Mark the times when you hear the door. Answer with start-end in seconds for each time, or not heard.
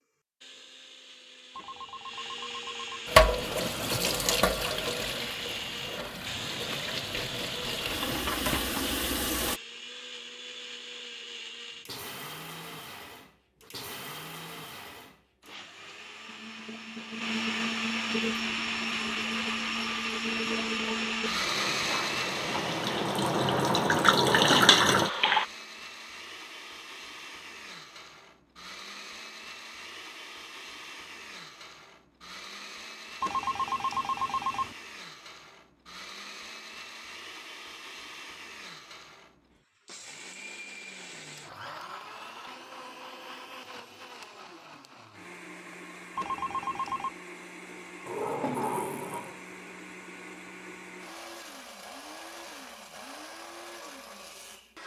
24.1-24.6, 48.0-49.4.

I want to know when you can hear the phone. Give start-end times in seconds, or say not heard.
1.6-3.1, 33.2-34.8, 46.1-47.1.